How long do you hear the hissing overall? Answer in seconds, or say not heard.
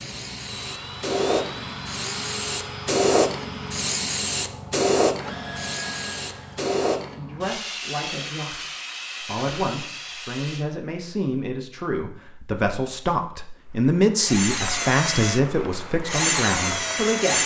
11 s.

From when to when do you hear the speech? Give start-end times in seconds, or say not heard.
7.2-17.4.